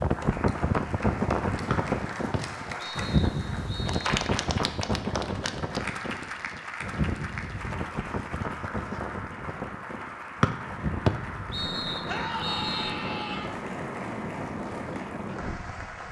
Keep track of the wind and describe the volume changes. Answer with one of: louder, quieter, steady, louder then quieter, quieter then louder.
quieter.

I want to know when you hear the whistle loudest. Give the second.
11 s.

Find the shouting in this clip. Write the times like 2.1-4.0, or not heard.
12.1-13.6.